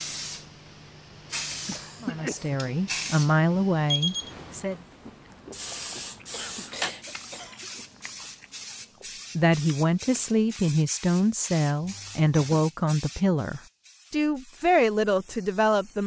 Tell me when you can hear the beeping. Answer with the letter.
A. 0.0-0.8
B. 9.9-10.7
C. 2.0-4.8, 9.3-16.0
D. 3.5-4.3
D.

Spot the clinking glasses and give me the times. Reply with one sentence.
The clinking glasses can't be heard in this clip.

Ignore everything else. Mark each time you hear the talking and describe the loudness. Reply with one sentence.
You can hear the talking briefly from 2.0 to 4.8 s; and from 9.3 to 16.0 s, at a steady volume.